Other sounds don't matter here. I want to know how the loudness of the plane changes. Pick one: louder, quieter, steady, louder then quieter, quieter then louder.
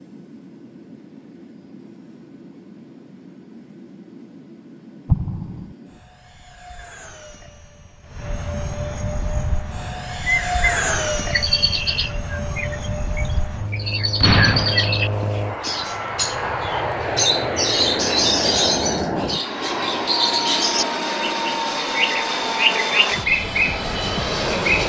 louder.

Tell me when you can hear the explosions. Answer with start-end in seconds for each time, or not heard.
5.0-5.7, 14.2-15.2.